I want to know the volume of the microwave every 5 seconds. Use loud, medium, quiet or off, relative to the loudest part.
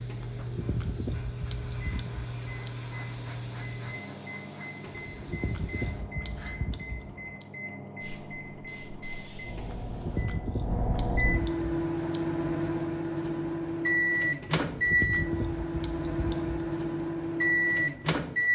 medium, quiet, loud, loud.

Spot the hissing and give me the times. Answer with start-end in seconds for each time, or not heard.
0.0-6.5, 8.0-10.3.